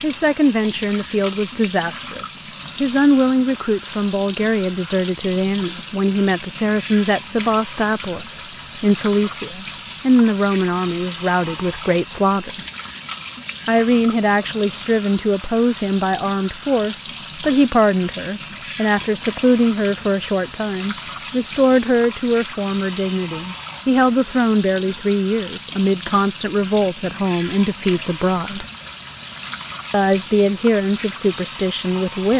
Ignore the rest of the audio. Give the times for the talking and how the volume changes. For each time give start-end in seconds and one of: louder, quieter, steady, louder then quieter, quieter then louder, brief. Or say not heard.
0.0-12.7 steady
13.7-28.6 steady
29.9-32.3 brief.